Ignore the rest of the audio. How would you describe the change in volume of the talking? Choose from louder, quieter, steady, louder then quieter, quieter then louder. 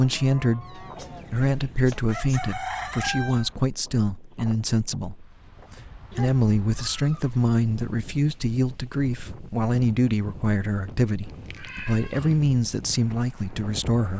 steady.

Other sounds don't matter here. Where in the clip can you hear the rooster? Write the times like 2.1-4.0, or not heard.
0.9-3.5.